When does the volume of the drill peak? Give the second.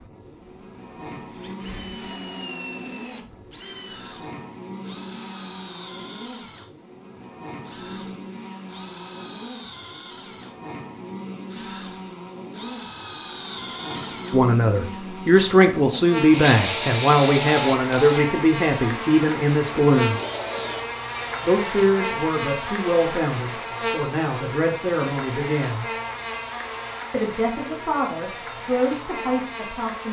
17 s.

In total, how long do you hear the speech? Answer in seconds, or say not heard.
13 s.